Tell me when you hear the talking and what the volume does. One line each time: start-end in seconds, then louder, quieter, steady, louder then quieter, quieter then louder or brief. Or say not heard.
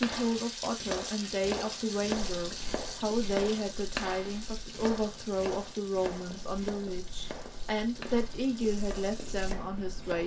0.0-10.2 steady.